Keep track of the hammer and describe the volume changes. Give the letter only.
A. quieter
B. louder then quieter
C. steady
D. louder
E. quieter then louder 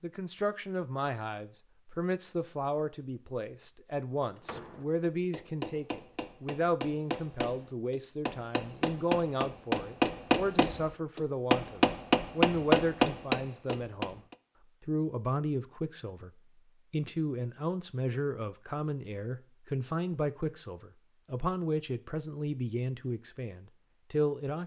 D.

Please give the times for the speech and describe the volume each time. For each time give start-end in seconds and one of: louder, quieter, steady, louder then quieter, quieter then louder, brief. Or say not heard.
0.0-14.2 steady
14.8-16.3 brief
16.9-24.6 steady.